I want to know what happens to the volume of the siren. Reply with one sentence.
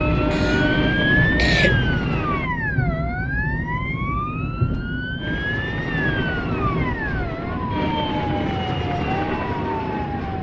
The loudness of the siren goes down.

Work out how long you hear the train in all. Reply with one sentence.
The train can be heard for 8 seconds in total.